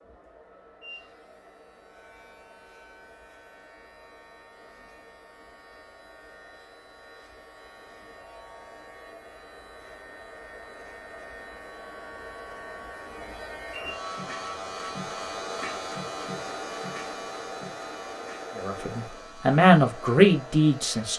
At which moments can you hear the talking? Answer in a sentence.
You can hear the talking from 18.6 to 21.1 s.